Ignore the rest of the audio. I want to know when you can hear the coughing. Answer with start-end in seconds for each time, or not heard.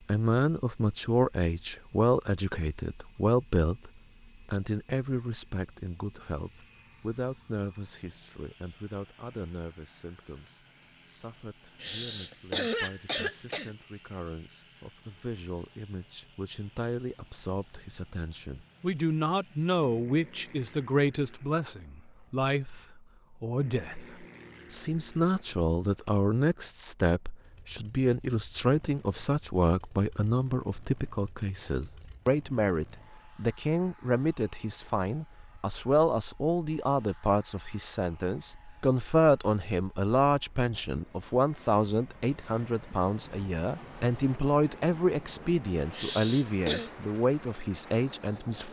11.8-13.7, 45.9-46.9.